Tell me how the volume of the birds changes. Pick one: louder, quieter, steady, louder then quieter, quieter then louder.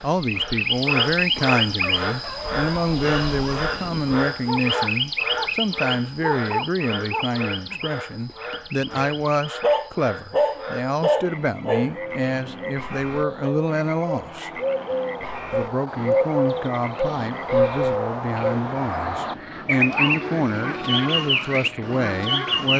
quieter then louder.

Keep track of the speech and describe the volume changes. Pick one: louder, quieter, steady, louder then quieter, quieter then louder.
steady.